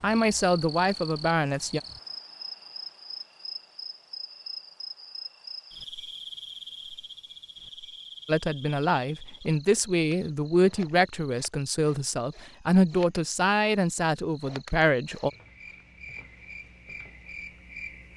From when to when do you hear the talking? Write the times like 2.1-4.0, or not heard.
0.0-1.8, 8.2-15.3.